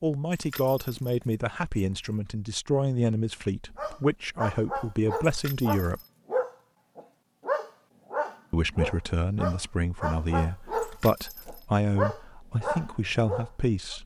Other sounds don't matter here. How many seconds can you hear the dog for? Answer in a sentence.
You can hear the dog for 10 seconds altogether.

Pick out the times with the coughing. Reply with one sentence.
The coughing can't be heard in this clip.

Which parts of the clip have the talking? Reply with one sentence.
The talking can be heard from 0.0 to 6.0 s and from 8.5 to 14.0 s.